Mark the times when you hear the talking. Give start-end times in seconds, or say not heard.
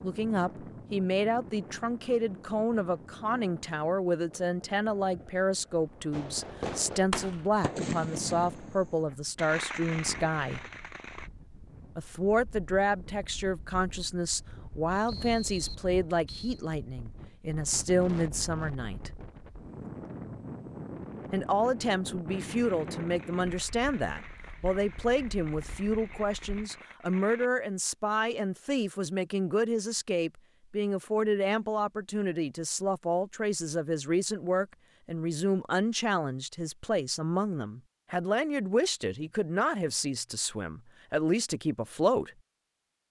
0.0-10.7, 11.9-19.1, 21.3-42.3.